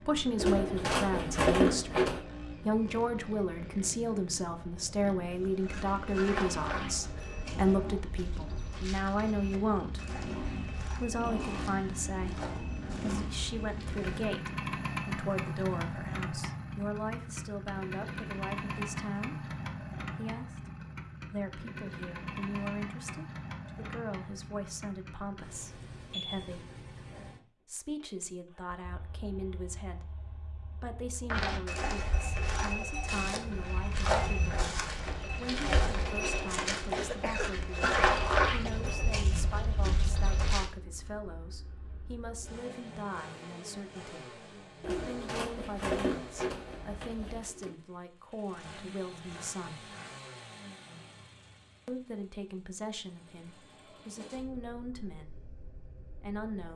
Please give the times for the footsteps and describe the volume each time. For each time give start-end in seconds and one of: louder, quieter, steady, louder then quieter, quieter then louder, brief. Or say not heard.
5.3-14.3 quieter
31.2-40.8 louder then quieter.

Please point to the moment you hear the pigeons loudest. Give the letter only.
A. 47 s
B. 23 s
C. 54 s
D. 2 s
D.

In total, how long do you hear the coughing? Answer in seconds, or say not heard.
2 s.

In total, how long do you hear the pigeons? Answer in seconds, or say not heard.
5 s.